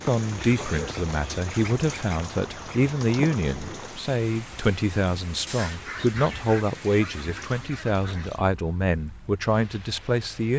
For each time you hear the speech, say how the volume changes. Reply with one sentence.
You can hear the speech from 0.1 to 10.5 s, at a steady volume.